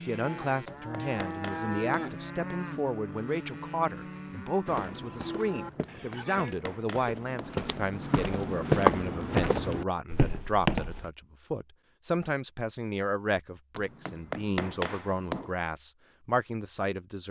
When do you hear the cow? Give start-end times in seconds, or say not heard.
0.0-6.5.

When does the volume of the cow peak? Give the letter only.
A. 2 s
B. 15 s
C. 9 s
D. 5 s
A.